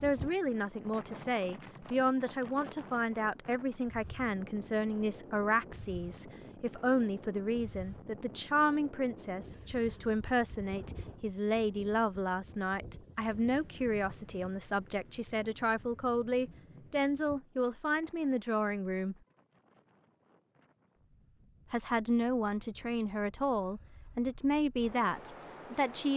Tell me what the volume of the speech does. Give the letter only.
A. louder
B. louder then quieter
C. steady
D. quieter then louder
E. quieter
C.